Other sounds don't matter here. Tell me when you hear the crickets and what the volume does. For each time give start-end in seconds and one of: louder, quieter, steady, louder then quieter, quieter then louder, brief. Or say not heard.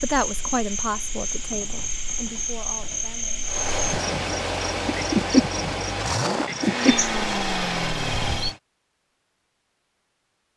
0.0-8.6 louder.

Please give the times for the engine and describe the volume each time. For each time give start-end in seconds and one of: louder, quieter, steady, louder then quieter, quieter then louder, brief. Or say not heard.
3.5-8.6 steady.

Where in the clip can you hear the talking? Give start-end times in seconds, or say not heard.
0.0-3.5.